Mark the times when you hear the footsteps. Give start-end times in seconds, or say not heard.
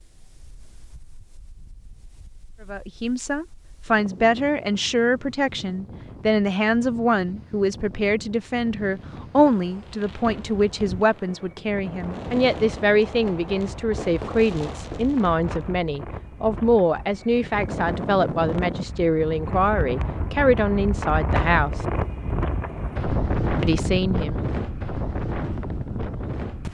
not heard.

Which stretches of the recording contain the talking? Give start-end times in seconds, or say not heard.
2.7-21.9, 23.6-24.4.